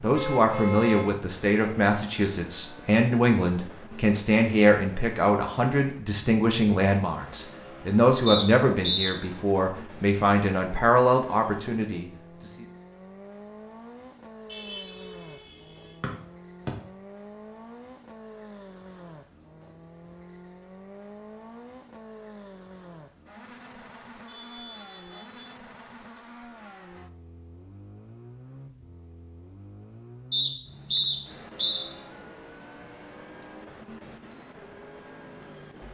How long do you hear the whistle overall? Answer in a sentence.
The whistle can be heard for 3 seconds in total.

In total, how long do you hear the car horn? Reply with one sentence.
You can hear the car horn for 4 seconds altogether.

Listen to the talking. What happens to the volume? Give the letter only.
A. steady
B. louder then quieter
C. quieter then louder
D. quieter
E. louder
A.